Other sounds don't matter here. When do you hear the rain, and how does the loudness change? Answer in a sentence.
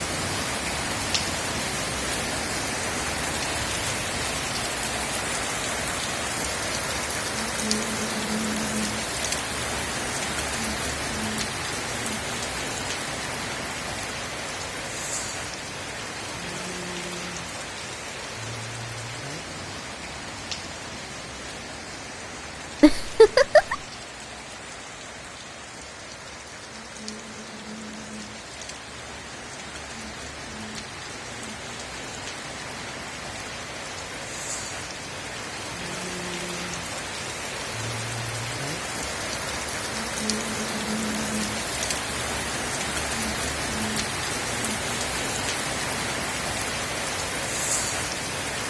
The rain can be heard from 0.0 to 48.6 s, getting quieter then louder.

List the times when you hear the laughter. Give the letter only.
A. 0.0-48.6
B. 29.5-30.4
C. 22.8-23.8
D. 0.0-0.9
C.